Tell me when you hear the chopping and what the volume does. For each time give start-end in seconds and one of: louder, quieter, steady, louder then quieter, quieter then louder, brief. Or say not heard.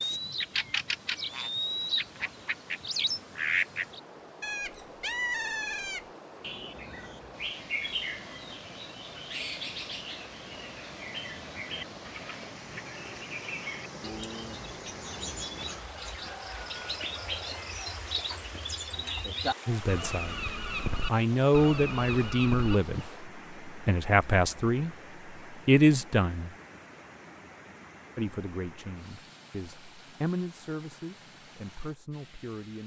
not heard.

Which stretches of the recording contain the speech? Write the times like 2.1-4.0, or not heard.
19.6-20.4, 21.1-26.5, 28.1-32.8.